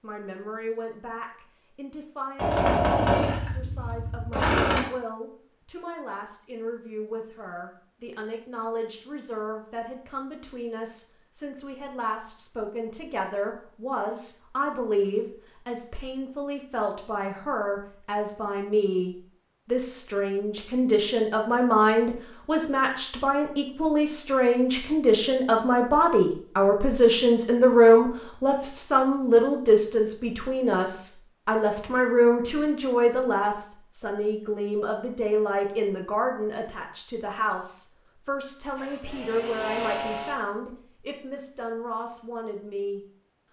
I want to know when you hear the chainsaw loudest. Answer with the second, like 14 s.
3 s.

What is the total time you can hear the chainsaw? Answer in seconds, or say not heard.
4 s.